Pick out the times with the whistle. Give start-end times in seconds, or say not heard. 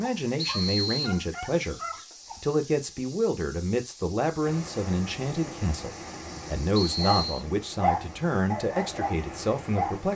0.3-1.1, 6.8-7.5.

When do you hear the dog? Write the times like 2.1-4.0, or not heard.
0.0-2.4, 6.9-10.0.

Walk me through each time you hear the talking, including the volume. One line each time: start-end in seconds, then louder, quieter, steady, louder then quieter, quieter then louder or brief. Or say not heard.
0.0-10.1 steady.